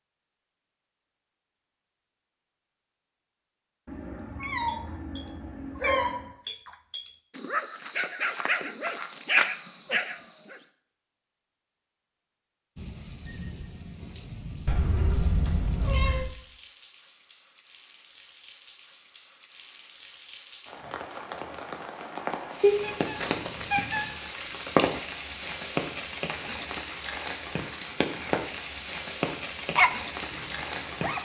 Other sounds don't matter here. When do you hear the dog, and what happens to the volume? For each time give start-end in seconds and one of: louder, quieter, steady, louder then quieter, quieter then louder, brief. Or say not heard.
4.7-10.2 quieter then louder
29.8-31.1 brief.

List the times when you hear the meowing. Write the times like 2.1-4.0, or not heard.
3.9-6.3, 14.7-16.4, 22.6-24.1.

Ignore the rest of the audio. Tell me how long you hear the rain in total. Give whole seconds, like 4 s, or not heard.
18 s.